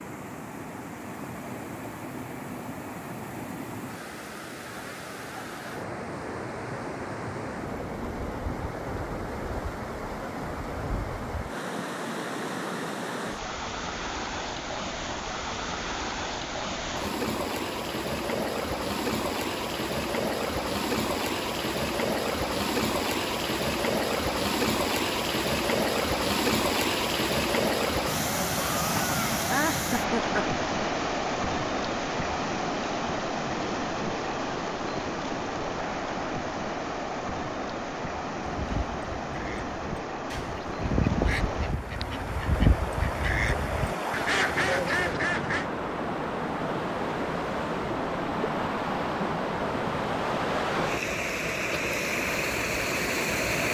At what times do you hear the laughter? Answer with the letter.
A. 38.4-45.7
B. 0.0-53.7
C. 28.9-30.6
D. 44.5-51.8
C.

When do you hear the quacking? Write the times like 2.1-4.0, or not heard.
38.4-45.7.